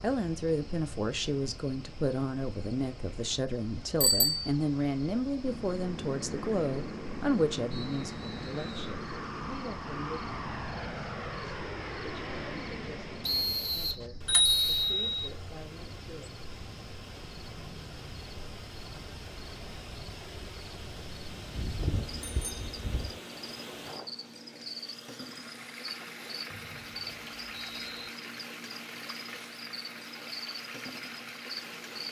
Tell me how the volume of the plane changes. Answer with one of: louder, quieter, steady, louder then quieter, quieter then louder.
steady.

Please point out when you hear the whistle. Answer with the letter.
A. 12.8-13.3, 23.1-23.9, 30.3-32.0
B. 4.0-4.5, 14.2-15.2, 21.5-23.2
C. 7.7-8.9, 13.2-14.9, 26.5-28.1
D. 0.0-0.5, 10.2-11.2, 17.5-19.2
C.